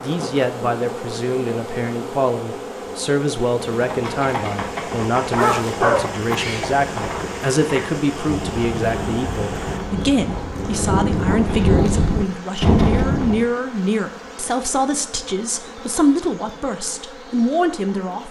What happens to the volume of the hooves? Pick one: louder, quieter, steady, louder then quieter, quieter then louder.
louder.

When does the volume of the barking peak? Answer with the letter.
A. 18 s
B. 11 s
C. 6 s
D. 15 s
C.